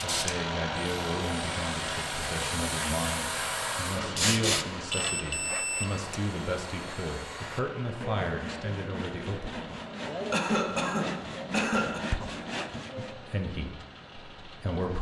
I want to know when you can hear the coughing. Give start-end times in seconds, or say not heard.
10.3-12.1.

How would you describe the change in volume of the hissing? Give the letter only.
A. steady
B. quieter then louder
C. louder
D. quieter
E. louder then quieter
C.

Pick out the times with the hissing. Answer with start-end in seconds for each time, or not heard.
0.0-4.7.